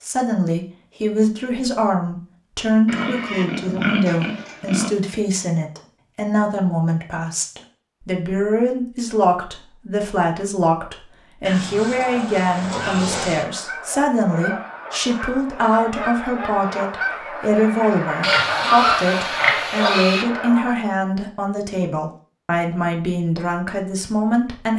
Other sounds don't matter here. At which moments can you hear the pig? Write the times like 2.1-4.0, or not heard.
2.9-4.9, 11.4-13.4, 18.2-20.2.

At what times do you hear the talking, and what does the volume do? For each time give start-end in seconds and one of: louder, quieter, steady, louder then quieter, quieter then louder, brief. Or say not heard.
0.0-24.7 steady.